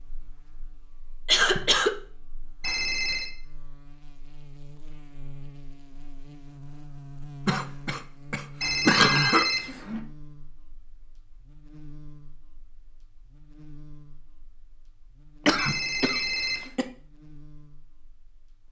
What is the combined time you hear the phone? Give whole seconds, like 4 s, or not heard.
3 s.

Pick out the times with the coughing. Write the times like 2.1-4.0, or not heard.
1.2-1.9, 7.5-9.4, 15.4-16.9.